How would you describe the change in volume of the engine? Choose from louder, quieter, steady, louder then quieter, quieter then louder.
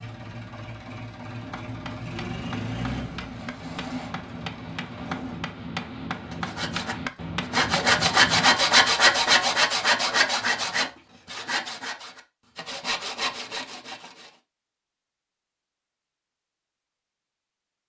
louder then quieter.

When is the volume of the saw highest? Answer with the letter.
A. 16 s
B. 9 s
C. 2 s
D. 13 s
B.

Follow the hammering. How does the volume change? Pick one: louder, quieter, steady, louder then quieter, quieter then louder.
louder.